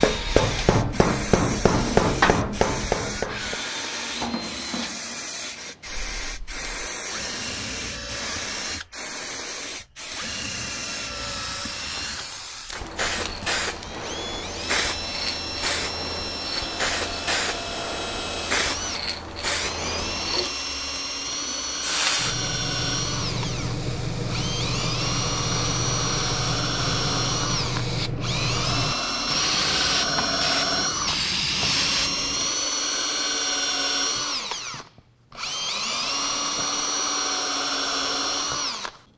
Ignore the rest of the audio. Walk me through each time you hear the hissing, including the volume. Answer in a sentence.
The hissing can be heard from 0.0 to 32.5 s, getting louder.